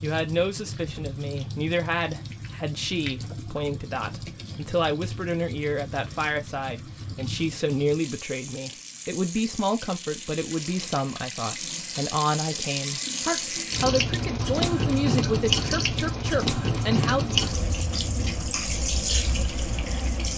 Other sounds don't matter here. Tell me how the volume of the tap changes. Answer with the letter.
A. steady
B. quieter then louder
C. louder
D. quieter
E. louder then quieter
C.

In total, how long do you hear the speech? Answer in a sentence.
The speech can be heard for 17 seconds in total.